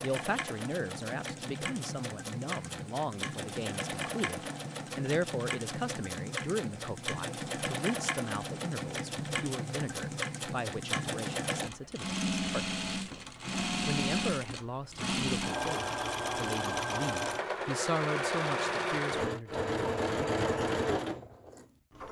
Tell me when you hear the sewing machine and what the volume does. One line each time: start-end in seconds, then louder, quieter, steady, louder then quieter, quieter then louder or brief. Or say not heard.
0.0-22.0 louder.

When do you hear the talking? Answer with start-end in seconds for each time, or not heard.
0.0-13.2, 13.8-20.2.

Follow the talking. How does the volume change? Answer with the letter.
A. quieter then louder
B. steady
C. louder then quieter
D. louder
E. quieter
B.